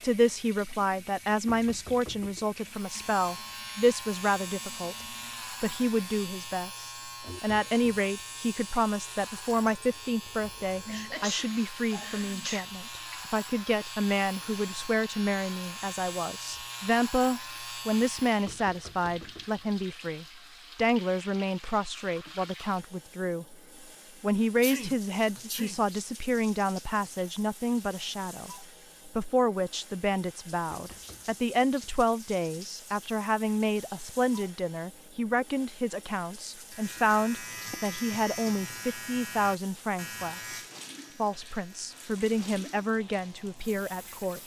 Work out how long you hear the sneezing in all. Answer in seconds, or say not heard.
3 s.